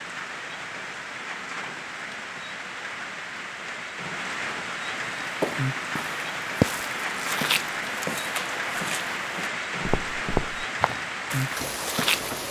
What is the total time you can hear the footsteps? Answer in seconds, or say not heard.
7 s.